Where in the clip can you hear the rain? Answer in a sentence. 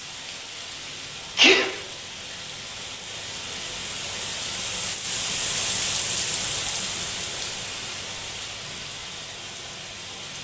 You can hear the rain from 0.0 to 10.3 s.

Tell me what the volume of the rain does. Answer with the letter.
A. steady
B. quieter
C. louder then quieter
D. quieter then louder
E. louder
C.